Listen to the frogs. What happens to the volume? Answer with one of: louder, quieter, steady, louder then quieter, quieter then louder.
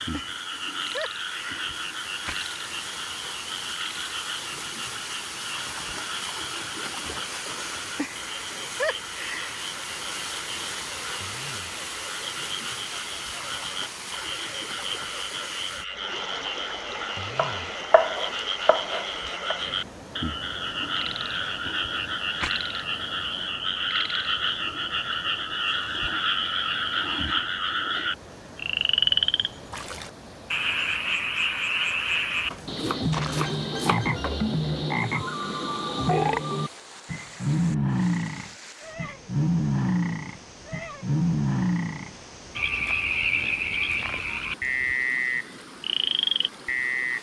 louder.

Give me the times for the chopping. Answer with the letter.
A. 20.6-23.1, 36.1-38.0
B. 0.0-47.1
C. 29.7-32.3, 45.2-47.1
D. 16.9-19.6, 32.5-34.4
D.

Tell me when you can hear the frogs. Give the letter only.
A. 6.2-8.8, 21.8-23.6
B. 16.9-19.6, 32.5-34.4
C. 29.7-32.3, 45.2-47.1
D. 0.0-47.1
D.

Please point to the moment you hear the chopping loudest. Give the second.
18 s.